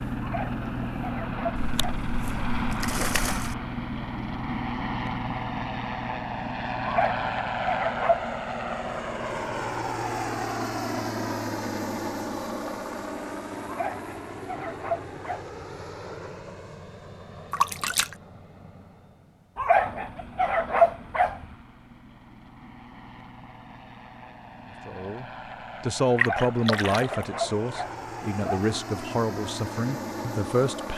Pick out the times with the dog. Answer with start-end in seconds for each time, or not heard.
0.2-2.0, 6.8-8.2, 13.7-15.6, 19.6-21.4, 26.1-28.6.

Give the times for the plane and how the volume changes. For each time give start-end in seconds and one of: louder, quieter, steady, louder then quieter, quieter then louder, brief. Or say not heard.
0.0-30.9 quieter then louder.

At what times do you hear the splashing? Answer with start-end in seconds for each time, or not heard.
1.6-3.5, 17.5-18.1, 26.1-27.2.